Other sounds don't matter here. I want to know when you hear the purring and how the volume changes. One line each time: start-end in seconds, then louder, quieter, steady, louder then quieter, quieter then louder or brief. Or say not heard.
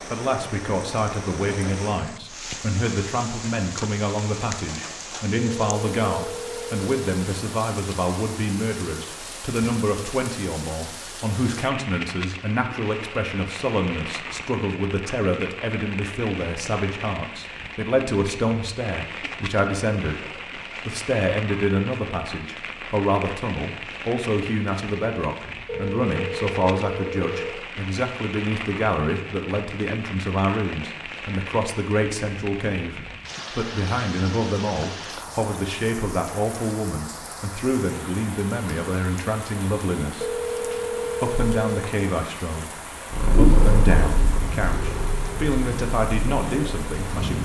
43.0-47.3 quieter.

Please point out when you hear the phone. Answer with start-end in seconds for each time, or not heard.
5.3-6.9, 25.6-27.6, 40.2-41.9.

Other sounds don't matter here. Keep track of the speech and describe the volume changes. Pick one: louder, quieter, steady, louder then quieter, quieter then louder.
steady.